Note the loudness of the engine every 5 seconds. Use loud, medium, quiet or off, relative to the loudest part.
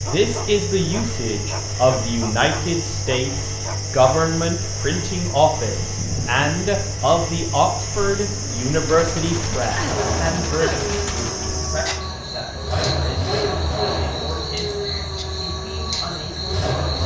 medium, medium, loud, loud.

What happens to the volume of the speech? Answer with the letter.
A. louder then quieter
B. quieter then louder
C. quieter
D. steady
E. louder
C.